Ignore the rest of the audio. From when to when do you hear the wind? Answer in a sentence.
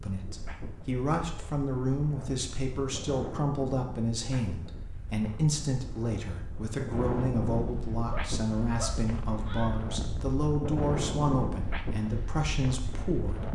The wind can be heard from 0.0 to 13.5 s.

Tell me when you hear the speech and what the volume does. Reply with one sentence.
You can hear the speech from 0.0 to 13.5 s, at a steady volume.